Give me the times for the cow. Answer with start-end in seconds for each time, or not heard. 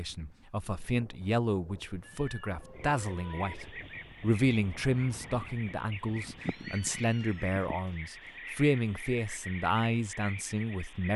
not heard.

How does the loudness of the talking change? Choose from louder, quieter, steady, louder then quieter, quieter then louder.
steady.